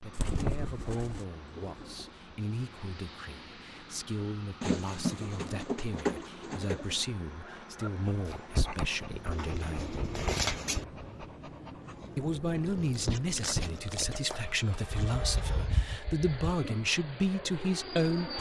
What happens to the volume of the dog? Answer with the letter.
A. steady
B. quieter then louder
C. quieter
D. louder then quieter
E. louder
B.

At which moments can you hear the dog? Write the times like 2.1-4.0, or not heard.
7.4-14.8.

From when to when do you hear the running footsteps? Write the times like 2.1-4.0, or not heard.
not heard.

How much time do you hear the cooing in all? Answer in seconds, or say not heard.
8 s.